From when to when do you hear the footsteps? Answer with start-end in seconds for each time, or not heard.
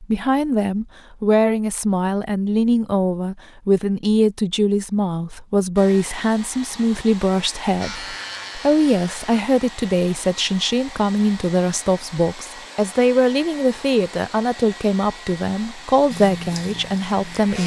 not heard.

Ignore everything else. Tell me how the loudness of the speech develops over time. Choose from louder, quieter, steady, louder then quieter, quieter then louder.
steady.